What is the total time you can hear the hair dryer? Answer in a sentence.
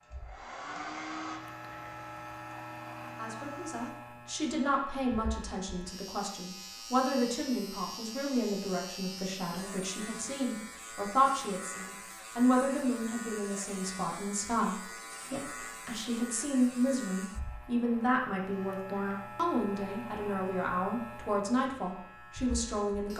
You can hear the hair dryer for 4 seconds altogether.